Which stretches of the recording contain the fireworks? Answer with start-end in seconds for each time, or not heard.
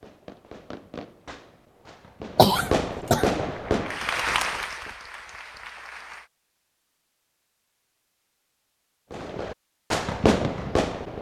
0.0-4.9, 9.1-11.1.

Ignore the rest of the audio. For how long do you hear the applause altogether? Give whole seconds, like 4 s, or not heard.
3 s.